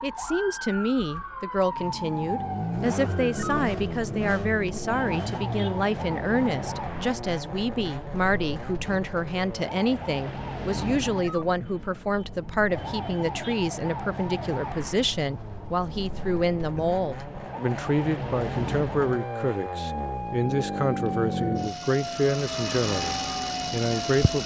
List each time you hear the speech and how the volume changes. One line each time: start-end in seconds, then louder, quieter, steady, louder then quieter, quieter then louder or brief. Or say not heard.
0.0-24.4 steady.